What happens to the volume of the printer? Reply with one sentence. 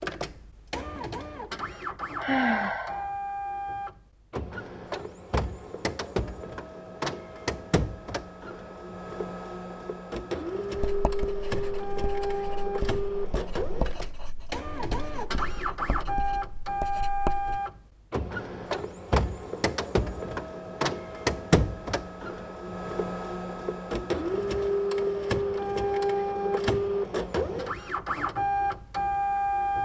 The loudness of the printer goes up.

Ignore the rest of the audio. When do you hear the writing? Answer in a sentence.
The writing can be heard from 10.8 to 17.6 s.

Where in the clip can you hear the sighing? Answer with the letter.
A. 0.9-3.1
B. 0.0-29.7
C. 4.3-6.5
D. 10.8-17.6
A.